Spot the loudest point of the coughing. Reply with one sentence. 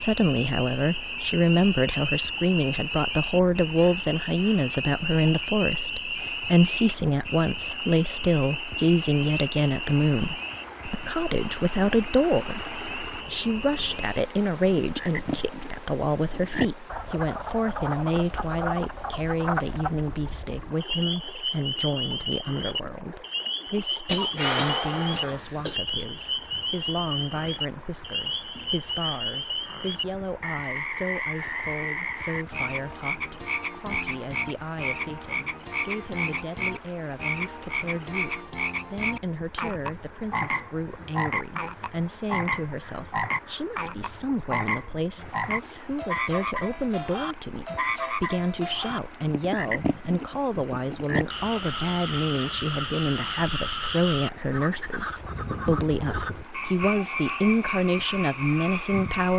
The loudest moment of the coughing is at 25 seconds.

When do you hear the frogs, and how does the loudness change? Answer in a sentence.
The frogs can be heard from 0.0 to 59.3 s, at a steady volume.